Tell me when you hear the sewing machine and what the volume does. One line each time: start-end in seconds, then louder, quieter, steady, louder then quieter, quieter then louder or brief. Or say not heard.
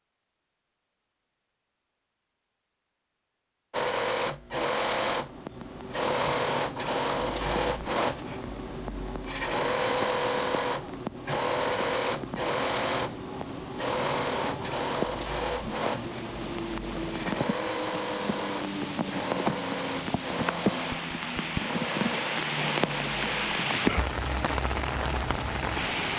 3.7-26.1 quieter.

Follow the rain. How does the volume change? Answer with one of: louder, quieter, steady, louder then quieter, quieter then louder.
louder.